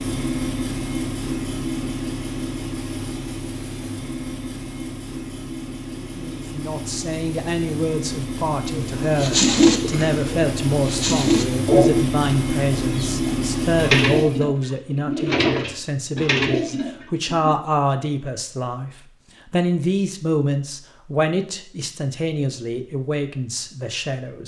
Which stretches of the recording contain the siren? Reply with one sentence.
You can't hear the siren here.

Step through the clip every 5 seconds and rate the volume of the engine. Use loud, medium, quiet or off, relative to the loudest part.
loud, medium, loud, off, off.